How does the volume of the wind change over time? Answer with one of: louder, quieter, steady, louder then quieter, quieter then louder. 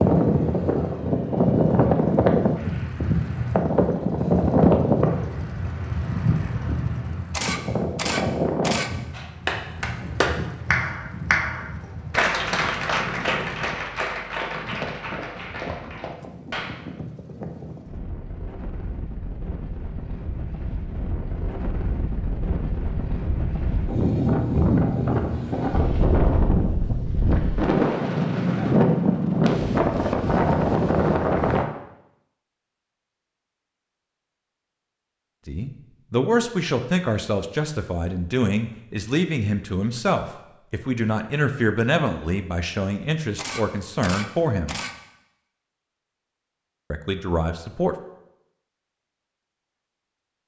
quieter then louder.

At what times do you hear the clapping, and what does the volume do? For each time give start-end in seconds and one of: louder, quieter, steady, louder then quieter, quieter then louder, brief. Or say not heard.
9.1-16.8 quieter.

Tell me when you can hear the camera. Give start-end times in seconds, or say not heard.
7.3-8.9, 43.4-45.0.